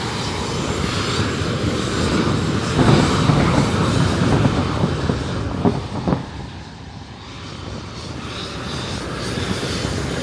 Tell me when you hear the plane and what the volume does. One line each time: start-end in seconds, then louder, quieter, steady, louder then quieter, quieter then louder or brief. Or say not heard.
0.0-10.1 quieter then louder.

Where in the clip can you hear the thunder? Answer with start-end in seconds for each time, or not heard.
2.6-6.3.